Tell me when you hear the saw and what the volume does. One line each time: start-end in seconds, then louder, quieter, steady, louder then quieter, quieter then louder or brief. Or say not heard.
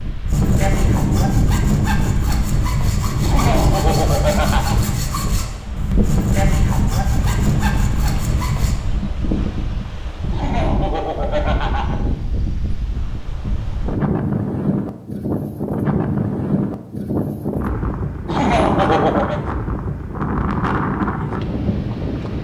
0.2-8.8 steady.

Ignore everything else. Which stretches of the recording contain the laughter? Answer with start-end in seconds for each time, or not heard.
3.2-4.8, 10.3-12.0, 18.2-19.4.